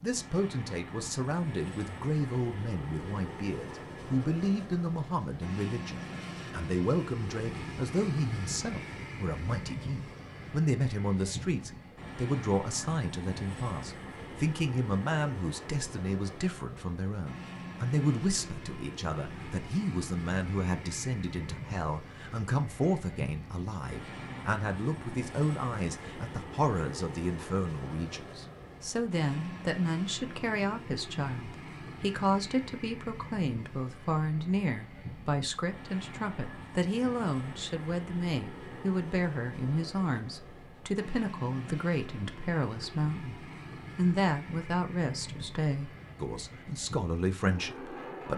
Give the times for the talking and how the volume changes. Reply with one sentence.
You can hear the talking from 0.0 to 48.3 s, at a steady volume.